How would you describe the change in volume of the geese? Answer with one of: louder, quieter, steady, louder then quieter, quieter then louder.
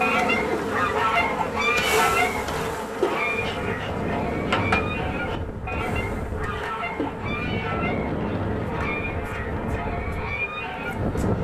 quieter.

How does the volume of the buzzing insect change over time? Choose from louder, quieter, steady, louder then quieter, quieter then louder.
quieter.